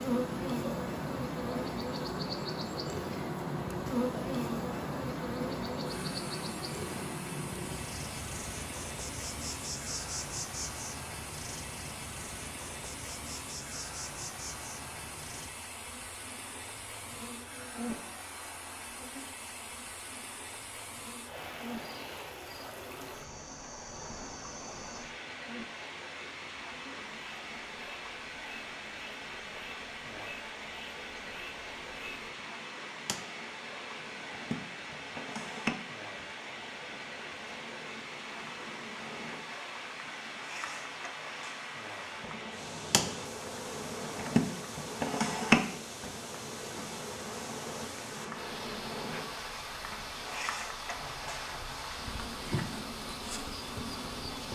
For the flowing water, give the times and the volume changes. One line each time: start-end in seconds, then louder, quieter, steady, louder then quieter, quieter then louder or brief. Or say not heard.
0.0-54.5 steady.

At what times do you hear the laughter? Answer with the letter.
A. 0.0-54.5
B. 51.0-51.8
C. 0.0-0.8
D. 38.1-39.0
B.